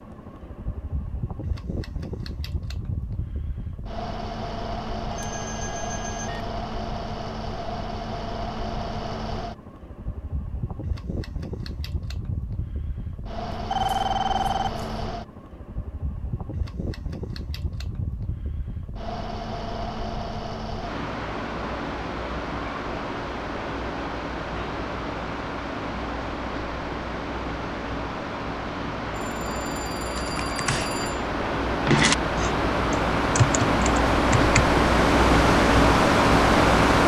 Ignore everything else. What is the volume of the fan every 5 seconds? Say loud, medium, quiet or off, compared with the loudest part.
quiet, quiet, quiet, quiet, quiet, quiet, medium, loud.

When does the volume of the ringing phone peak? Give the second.
14 s.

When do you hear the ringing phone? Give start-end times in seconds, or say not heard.
5.1-6.5, 13.5-14.9, 29.3-31.3.